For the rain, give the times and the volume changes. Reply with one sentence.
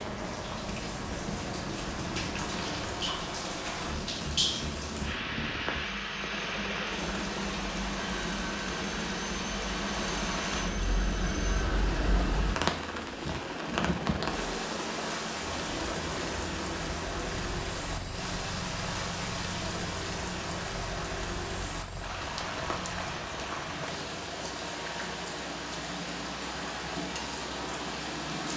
The rain can be heard from 0.0 to 28.5 s, at a steady volume.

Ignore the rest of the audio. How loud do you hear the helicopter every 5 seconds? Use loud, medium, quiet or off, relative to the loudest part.
loud, loud, loud, loud, medium, medium.